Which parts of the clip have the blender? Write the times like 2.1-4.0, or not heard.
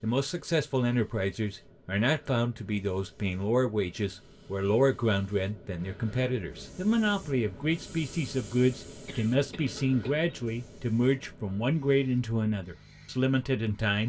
not heard.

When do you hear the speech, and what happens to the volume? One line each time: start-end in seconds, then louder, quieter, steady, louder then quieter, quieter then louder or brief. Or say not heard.
0.0-14.0 steady.